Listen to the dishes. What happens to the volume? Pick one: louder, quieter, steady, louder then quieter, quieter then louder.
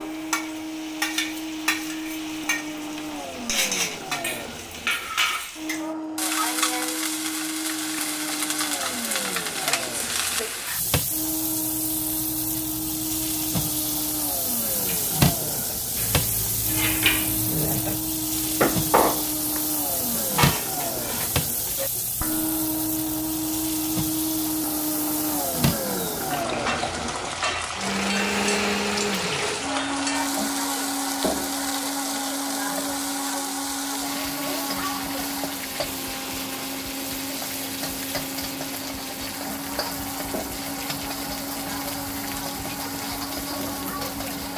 louder then quieter.